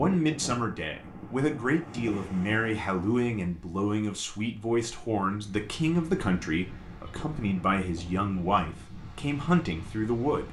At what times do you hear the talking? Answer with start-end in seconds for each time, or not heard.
0.0-10.4.